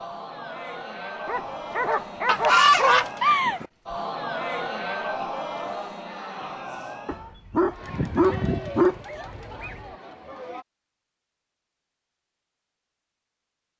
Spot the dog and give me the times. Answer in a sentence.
The dog can be heard from 1.2 to 3.0 s and from 7.0 to 9.8 s.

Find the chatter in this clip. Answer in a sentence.
The chatter can be heard from 0.0 to 10.7 s.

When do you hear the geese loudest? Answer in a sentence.
The volume of the geese peaks at 3 seconds.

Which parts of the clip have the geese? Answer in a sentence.
You can hear the geese from 2.2 to 3.6 s and from 7.8 to 9.8 s.